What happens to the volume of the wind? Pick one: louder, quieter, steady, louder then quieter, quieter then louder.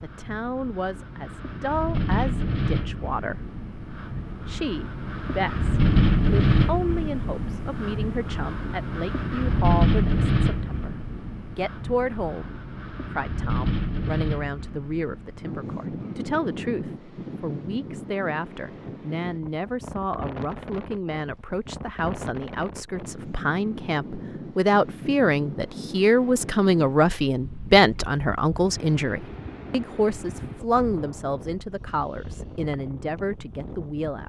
quieter.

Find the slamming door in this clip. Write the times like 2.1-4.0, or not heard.
not heard.